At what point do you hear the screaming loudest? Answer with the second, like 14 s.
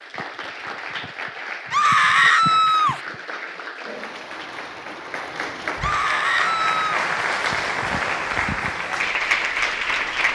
2 s.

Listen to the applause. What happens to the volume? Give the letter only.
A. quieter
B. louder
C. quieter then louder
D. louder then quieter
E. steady
B.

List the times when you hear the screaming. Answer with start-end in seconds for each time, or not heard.
1.7-3.0, 5.8-7.0.